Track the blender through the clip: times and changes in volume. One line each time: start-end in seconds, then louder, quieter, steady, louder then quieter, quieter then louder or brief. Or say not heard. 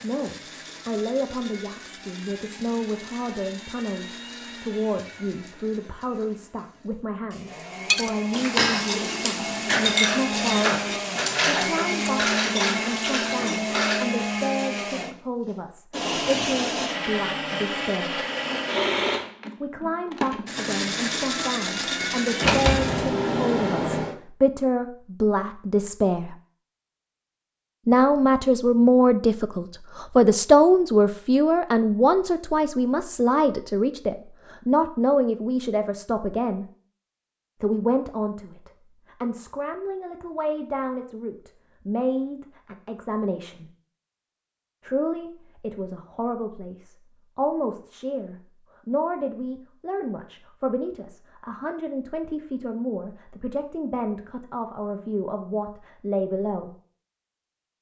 0.0-23.1 louder.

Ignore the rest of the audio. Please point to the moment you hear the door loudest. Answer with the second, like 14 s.
23 s.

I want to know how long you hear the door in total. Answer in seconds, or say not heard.
2 s.